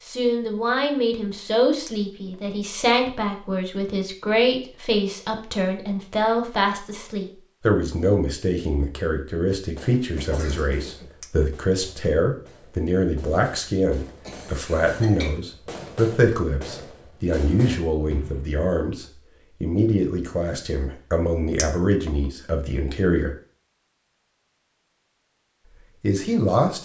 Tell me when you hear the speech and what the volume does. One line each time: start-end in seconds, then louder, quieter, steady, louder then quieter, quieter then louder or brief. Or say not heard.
0.1-23.3 steady
26.0-26.8 brief.